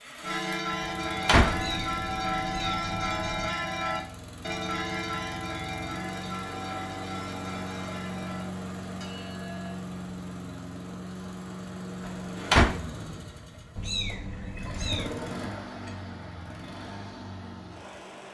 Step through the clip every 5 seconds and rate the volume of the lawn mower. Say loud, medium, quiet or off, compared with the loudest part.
medium, loud, loud, loud.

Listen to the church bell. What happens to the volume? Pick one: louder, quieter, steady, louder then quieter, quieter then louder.
quieter.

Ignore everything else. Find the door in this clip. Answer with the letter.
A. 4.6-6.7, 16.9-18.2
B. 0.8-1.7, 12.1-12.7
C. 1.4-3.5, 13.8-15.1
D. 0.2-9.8
B.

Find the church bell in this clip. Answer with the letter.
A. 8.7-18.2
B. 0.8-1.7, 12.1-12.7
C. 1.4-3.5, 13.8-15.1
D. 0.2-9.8
D.